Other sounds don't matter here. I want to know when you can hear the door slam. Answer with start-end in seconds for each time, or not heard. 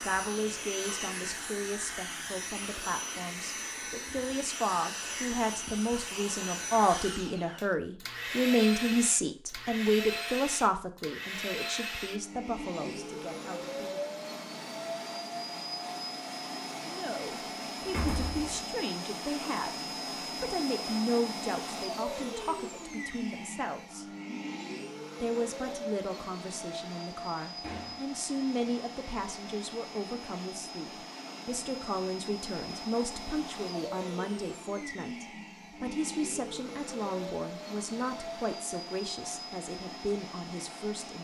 17.8-18.6, 27.6-28.1.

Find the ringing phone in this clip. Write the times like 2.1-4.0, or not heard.
not heard.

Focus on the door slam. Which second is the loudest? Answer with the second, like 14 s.
18 s.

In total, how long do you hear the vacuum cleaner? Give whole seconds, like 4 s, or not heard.
41 s.